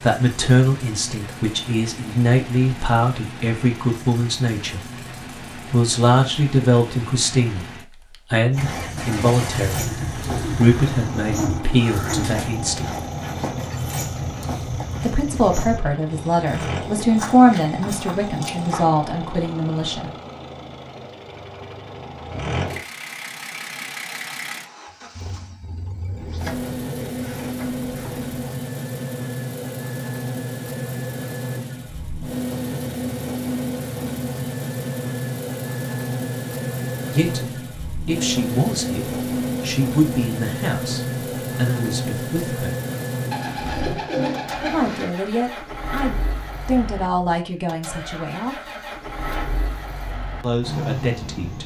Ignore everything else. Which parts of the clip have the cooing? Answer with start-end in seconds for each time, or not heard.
9.8-12.7, 26.2-28.3, 43.3-45.1.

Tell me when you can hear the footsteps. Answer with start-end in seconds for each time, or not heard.
8.5-18.9.